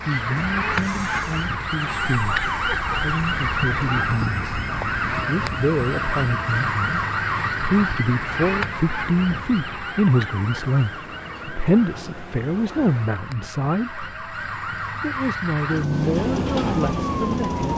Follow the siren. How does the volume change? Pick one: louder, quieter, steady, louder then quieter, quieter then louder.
quieter then louder.